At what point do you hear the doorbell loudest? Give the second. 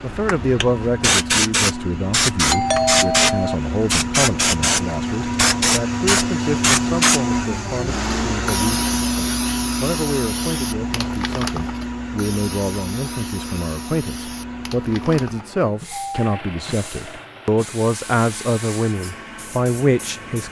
3 s.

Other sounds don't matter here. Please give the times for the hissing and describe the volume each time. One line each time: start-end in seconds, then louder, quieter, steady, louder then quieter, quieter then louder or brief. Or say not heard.
0.1-20.4 quieter.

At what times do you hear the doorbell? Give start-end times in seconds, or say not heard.
2.5-3.5, 15.8-16.3.